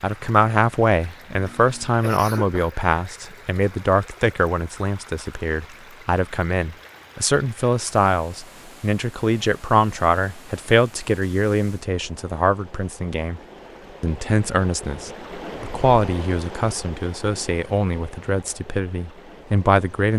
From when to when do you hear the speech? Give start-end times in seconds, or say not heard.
0.0-13.4, 14.0-20.1.